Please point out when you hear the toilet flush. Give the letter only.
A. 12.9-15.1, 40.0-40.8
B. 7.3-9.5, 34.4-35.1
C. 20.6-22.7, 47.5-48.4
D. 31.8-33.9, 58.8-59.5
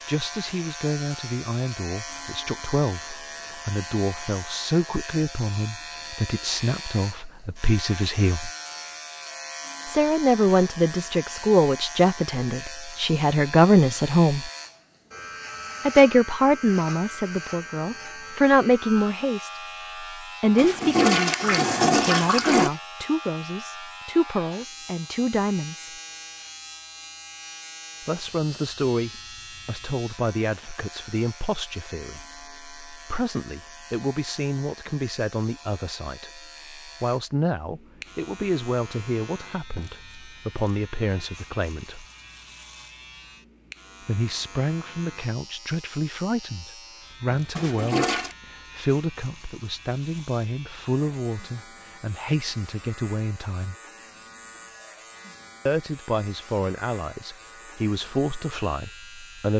C.